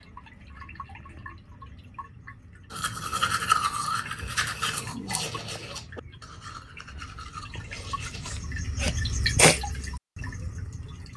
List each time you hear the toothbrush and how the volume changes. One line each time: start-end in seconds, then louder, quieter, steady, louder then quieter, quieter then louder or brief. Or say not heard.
2.7-8.3 quieter.